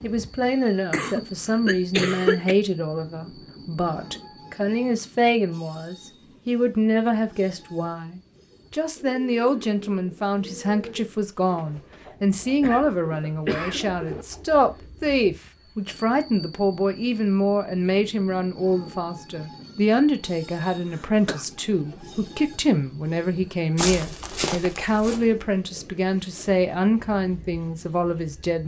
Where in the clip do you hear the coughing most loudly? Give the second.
2 s.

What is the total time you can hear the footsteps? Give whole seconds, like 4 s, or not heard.
2 s.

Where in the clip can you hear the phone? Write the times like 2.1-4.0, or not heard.
not heard.